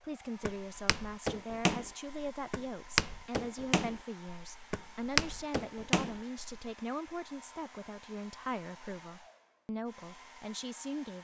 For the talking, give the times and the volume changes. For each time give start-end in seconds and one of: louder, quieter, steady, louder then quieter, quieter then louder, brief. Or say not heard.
0.0-11.1 steady.